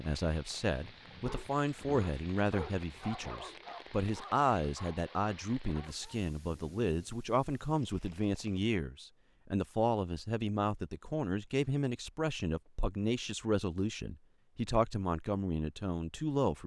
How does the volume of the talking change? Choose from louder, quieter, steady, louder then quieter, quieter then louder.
steady.